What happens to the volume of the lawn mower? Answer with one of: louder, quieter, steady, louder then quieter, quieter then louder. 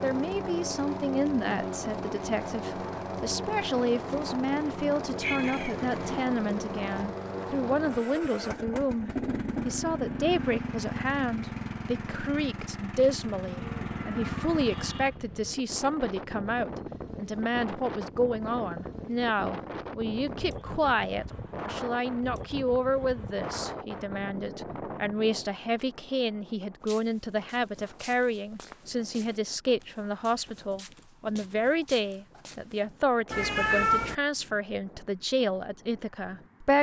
steady.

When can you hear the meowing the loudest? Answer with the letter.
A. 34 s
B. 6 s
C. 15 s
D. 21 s
A.